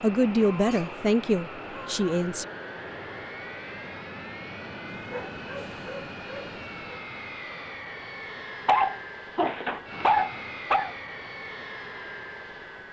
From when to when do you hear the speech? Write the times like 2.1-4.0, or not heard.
0.0-2.5.